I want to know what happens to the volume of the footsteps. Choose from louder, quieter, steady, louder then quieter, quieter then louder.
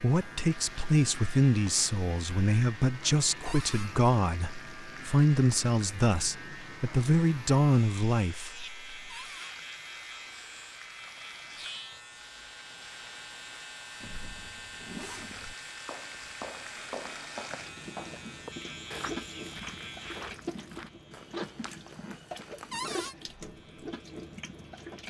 quieter.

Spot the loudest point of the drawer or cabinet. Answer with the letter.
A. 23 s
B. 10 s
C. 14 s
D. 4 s
A.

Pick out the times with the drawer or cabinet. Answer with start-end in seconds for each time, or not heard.
3.5-3.9, 9.1-9.6, 22.7-23.1.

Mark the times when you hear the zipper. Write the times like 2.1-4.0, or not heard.
14.0-15.6.